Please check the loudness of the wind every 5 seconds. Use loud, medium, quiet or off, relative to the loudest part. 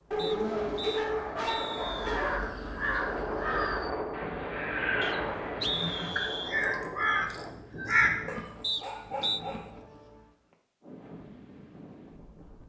loud, loud, quiet.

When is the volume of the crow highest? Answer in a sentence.
The volume of the crow peaks at 8 seconds.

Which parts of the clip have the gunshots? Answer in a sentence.
The gunshots can't be heard in this clip.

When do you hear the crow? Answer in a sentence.
You can hear the crow from 1.8 to 8.2 s.